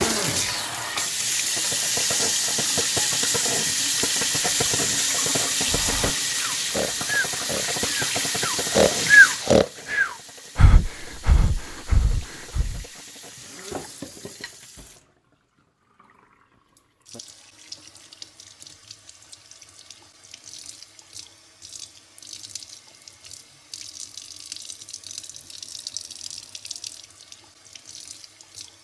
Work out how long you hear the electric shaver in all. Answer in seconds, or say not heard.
not heard.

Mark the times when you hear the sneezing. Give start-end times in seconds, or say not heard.
not heard.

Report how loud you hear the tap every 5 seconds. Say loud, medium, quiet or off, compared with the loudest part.
loud, loud, quiet, quiet, quiet, quiet.